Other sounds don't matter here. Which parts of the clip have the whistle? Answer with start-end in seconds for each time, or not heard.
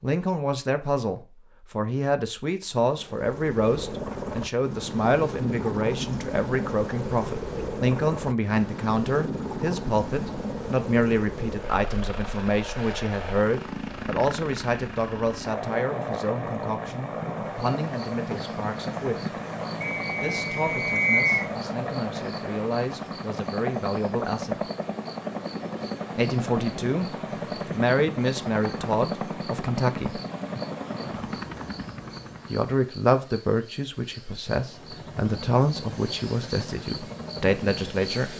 19.8-21.4.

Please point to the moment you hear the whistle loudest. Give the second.
21 s.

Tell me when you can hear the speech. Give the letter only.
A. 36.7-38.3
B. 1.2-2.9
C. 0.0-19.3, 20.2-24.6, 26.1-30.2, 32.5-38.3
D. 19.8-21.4
C.